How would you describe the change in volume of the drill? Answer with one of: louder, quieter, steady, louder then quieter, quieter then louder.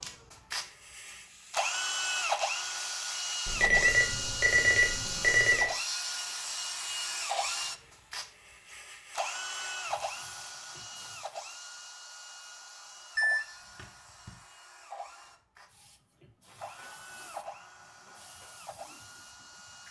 quieter.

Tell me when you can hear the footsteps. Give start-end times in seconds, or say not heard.
not heard.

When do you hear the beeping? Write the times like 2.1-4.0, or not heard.
3.5-5.7, 13.2-14.3.